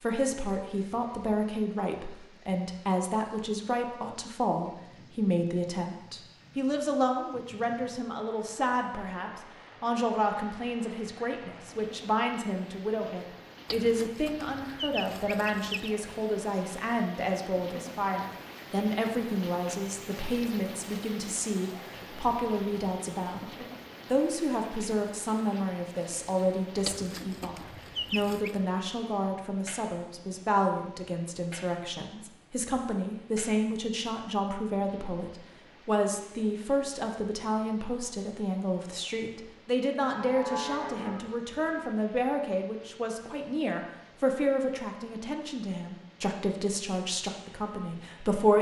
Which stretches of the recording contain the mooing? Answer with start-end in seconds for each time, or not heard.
40.0-41.9.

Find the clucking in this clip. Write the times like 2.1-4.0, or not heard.
13.7-15.9, 26.9-28.6.